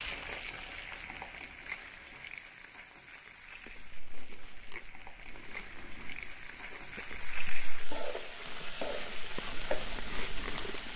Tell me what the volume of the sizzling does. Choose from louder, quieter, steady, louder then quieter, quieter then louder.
quieter then louder.